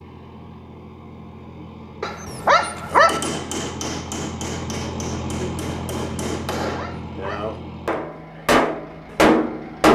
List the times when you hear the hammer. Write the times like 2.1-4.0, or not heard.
2.9-9.9.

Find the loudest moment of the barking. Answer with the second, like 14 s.
3 s.